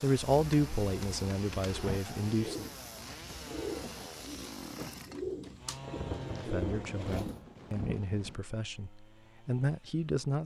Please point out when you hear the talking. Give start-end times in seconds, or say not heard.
0.0-2.6, 6.3-10.4.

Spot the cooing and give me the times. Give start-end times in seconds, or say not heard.
0.3-7.3.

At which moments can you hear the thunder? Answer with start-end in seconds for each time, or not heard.
5.8-8.4.